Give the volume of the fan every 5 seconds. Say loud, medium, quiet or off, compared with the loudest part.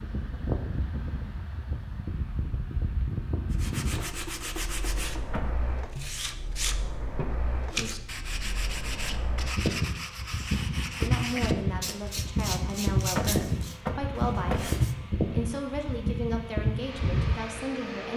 medium, medium, loud, loud.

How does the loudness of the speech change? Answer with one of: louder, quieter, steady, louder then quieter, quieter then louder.
steady.